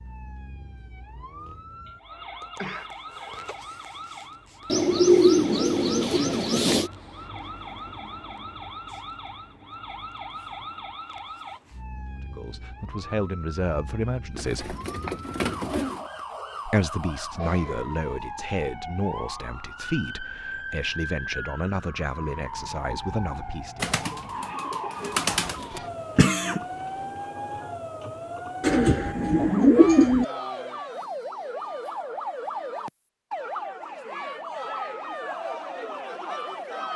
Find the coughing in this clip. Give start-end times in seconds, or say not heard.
1.9-3.6, 17.3-18.2, 26.1-26.6.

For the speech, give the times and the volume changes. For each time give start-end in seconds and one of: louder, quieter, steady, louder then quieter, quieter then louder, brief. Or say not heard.
12.3-14.8 brief
16.6-23.9 steady.